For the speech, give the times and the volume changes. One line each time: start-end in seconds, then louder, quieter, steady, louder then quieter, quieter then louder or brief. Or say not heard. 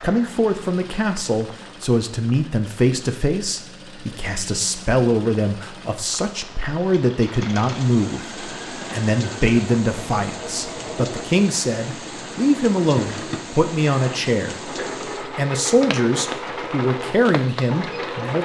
0.0-18.3 steady.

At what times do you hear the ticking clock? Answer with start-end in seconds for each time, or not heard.
not heard.